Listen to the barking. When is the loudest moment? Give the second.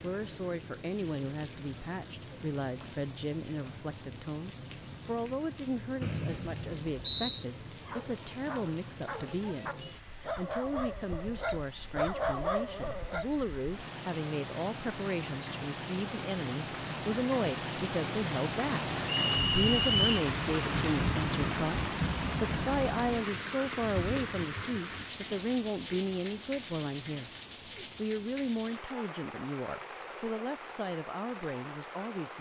12 s.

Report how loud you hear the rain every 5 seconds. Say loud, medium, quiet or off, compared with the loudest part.
quiet, quiet, quiet, loud, loud, medium, medium.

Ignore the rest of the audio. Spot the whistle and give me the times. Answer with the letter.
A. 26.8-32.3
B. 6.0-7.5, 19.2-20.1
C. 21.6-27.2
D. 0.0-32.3
B.